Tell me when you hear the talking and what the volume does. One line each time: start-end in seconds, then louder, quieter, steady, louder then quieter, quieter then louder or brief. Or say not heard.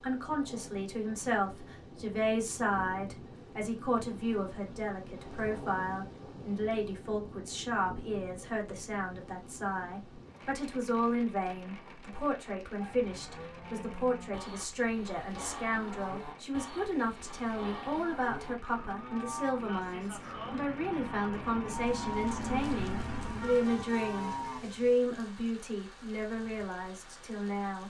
0.0-27.8 steady.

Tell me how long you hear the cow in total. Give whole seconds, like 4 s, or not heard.
12 s.